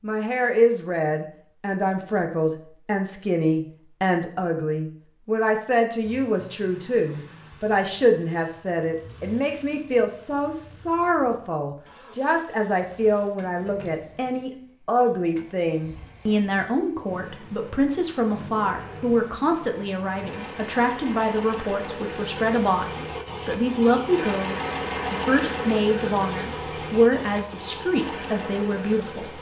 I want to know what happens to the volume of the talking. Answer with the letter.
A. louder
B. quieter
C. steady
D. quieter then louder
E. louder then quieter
C.